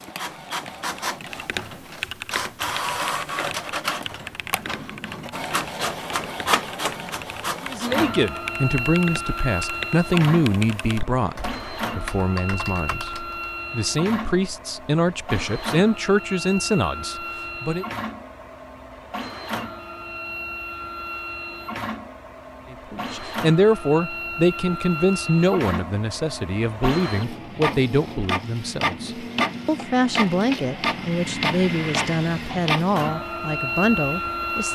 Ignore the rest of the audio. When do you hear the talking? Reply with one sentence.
You can hear the talking from 7.6 to 17.9 s and from 22.7 to 34.7 s.